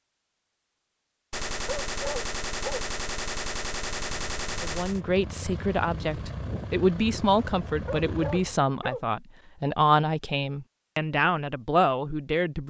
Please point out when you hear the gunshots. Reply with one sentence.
The gunshots can be heard from 1.3 to 5.0 s.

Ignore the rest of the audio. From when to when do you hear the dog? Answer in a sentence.
The dog can be heard from 1.6 to 2.9 s and from 7.8 to 9.1 s.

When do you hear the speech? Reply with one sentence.
You can hear the speech from 4.6 to 12.6 s.